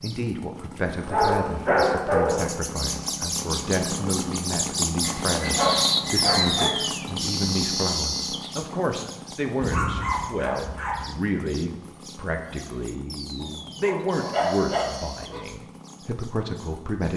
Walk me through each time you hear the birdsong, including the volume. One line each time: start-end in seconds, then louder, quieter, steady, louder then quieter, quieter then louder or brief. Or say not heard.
0.0-17.1 louder then quieter.